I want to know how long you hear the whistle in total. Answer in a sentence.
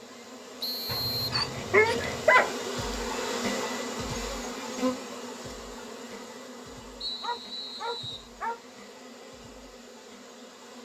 The whistle can be heard for 2 seconds in total.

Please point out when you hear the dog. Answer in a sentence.
You can hear the dog from 0.9 to 2.5 s and from 7.2 to 8.8 s.